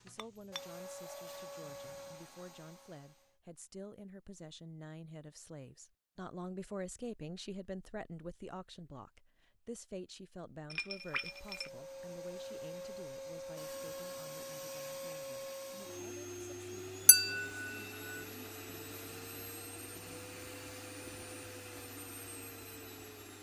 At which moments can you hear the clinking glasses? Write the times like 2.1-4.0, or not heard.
0.1-1.3, 10.7-11.7, 17.1-17.6.